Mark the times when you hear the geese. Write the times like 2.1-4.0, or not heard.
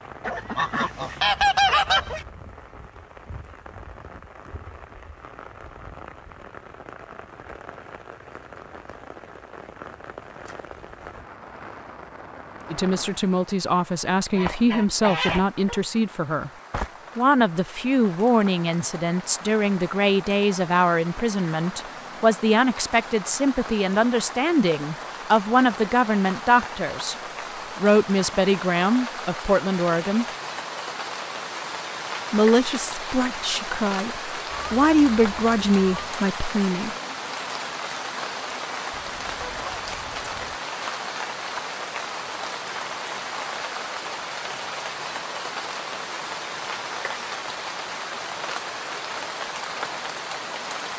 0.2-2.2, 14.3-15.8, 34.5-36.1, 38.9-40.6.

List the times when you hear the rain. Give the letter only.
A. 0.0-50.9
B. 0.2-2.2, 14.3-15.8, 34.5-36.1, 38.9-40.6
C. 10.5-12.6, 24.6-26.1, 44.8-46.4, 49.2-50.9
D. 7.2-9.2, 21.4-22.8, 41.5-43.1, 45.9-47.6
A.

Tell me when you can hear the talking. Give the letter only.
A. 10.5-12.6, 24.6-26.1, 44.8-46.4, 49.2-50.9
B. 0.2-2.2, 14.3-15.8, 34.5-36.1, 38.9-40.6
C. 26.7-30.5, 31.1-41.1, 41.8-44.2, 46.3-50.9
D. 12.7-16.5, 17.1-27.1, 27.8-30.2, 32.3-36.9
D.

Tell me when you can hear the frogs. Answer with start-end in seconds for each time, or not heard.
not heard.